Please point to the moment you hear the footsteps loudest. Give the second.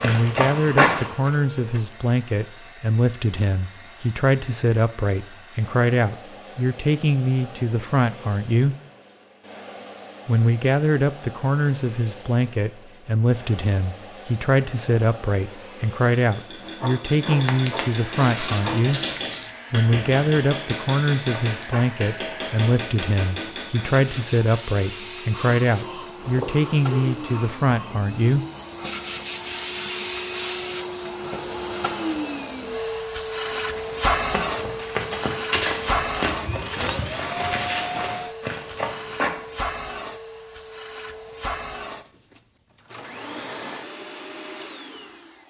1 s.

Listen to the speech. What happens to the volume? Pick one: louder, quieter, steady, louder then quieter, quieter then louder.
steady.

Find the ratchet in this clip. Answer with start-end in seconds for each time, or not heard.
not heard.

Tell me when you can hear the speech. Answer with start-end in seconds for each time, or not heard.
0.0-8.8, 10.2-19.0, 19.7-28.4.